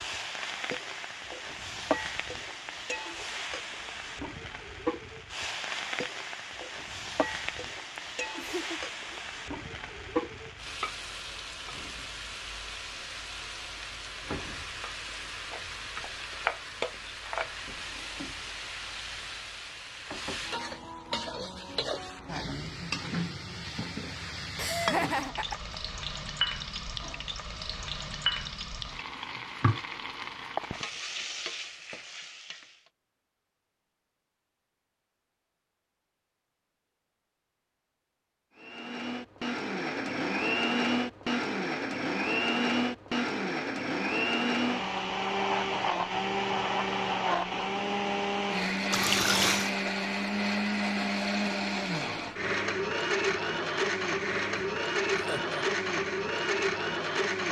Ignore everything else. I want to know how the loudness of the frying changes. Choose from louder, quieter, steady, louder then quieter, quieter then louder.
steady.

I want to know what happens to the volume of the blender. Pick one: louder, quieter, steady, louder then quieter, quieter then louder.
steady.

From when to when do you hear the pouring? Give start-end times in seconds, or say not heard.
48.9-49.8.